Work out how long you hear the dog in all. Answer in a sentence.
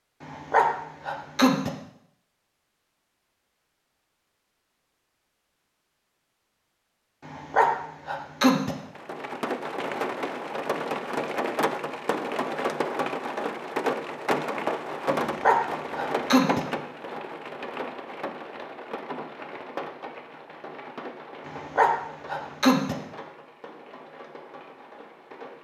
The dog can be heard for 6 seconds in total.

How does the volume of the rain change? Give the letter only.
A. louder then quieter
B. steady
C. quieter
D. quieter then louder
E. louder
C.